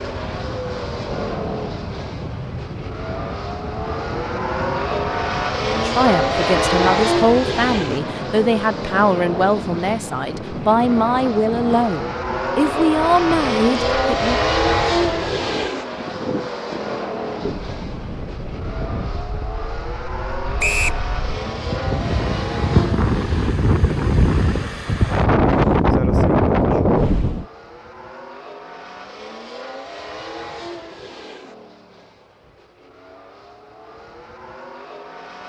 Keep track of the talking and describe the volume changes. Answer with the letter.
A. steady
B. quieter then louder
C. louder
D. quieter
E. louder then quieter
A.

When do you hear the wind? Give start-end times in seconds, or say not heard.
0.0-27.4.